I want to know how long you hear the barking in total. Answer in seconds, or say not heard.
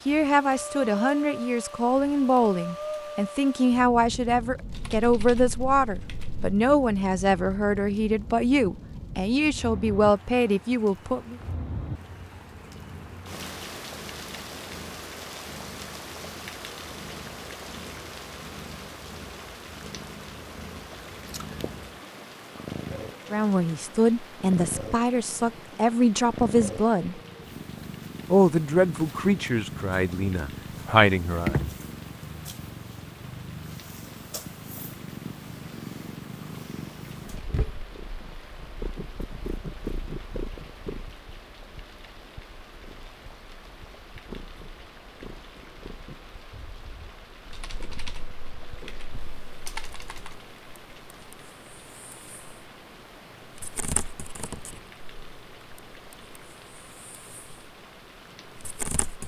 not heard.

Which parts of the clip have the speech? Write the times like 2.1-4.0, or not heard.
0.1-11.3, 23.3-27.2, 28.3-31.6.